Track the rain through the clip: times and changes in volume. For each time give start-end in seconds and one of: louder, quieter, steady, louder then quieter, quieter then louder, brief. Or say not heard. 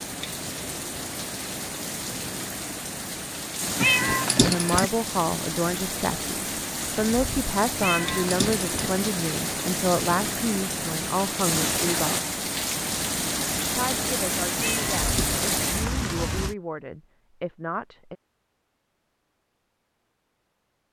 0.0-16.6 louder.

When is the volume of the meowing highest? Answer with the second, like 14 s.
4 s.